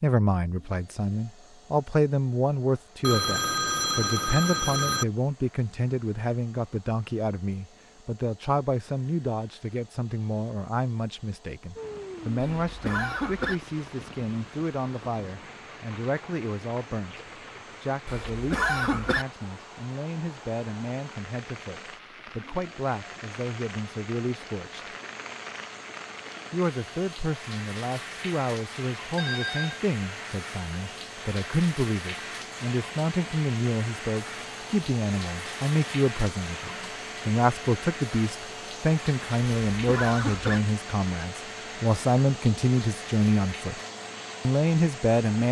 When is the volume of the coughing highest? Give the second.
19 s.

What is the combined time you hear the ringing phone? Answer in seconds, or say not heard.
3 s.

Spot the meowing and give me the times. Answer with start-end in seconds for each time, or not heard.
not heard.